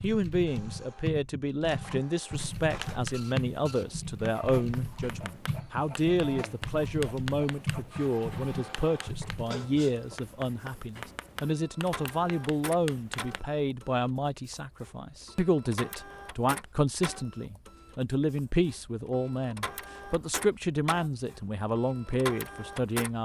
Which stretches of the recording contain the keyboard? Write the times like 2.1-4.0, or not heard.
0.0-9.4.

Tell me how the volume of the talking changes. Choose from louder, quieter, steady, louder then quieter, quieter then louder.
steady.